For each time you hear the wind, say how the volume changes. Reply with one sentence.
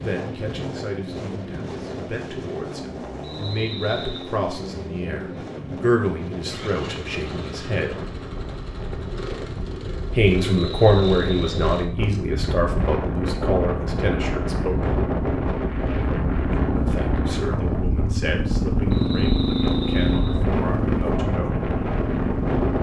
The wind can be heard from 0.0 to 22.7 s, getting louder.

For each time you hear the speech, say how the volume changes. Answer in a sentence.
The speech can be heard from 0.0 to 8.0 s, getting louder then quieter; from 10.1 to 14.9 s, getting quieter; and from 16.7 to 21.7 s, at a steady volume.